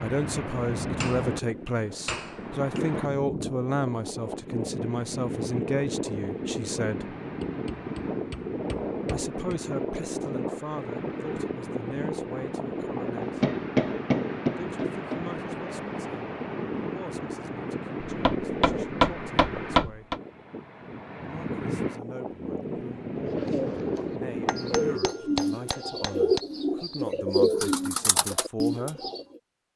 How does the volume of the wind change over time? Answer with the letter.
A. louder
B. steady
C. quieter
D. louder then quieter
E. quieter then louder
B.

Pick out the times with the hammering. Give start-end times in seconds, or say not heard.
1.0-2.9, 7.4-9.6, 13.2-15.2, 18.1-20.2, 24.4-26.4.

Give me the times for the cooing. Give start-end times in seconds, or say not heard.
23.1-29.4.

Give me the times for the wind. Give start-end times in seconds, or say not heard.
0.0-25.0.